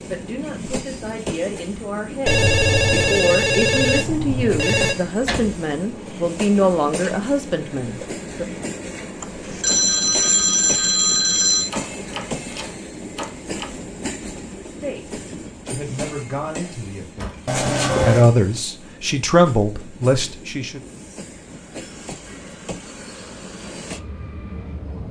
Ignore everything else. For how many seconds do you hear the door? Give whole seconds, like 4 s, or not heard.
3 s.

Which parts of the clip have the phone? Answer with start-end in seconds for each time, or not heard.
2.2-5.0, 9.2-11.7, 17.4-18.2.